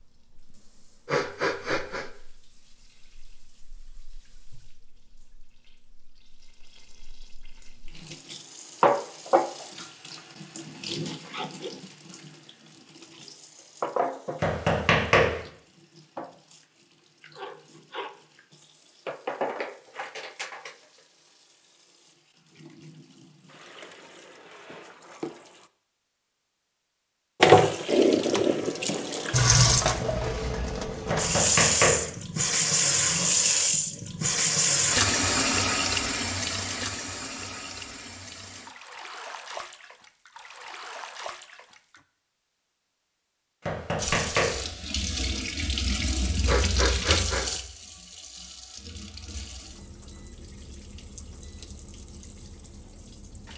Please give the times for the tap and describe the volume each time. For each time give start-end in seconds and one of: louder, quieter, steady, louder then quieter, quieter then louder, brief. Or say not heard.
0.0-25.7 louder then quieter
27.4-42.0 quieter
44.0-53.5 quieter.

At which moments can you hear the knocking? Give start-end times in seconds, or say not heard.
14.4-15.3, 31.1-32.0, 43.6-44.6.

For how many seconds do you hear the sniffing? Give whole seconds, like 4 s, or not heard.
2 s.